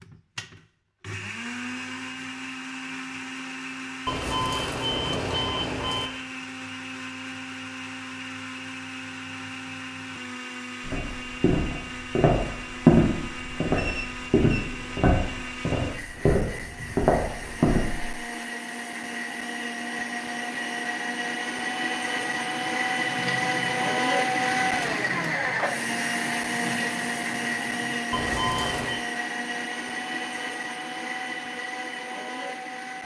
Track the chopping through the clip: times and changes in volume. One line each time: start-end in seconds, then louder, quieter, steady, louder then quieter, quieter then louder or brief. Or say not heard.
not heard.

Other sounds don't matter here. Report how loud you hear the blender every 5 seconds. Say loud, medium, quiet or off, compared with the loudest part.
medium, medium, medium, medium, loud, loud, medium.